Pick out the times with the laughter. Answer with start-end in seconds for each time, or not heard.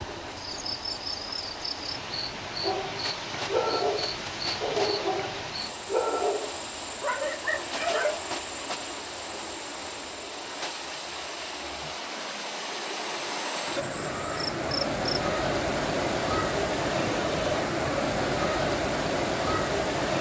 not heard.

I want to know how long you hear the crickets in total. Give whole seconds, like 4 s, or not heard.
15 s.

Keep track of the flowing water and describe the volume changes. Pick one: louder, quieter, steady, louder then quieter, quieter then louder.
louder.